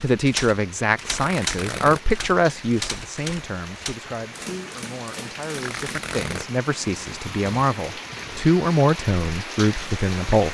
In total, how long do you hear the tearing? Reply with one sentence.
The tearing can be heard for 2 seconds in total.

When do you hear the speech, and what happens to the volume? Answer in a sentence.
The speech can be heard from 0.0 to 10.4 s, getting quieter then louder.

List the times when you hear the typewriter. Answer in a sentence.
The typewriter can be heard from 0.0 to 6.2 s.